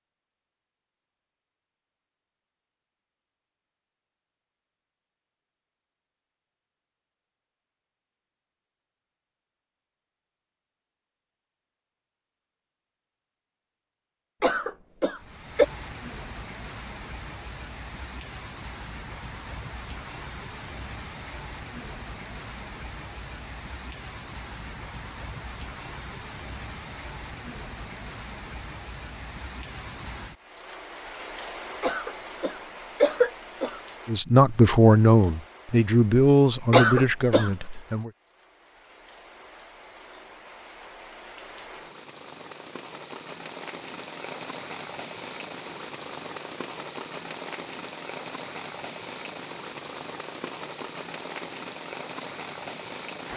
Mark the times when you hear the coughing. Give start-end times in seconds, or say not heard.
14.4-15.7, 31.8-33.8, 36.7-37.5.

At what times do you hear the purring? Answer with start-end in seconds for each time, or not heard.
not heard.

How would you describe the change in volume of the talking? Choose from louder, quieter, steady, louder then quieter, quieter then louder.
quieter.